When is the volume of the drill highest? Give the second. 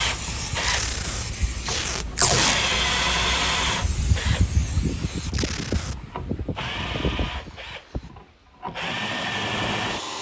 3 s.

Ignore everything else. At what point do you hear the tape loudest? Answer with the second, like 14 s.
2 s.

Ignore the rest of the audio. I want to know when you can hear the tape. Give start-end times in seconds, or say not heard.
0.6-2.5, 5.3-6.0.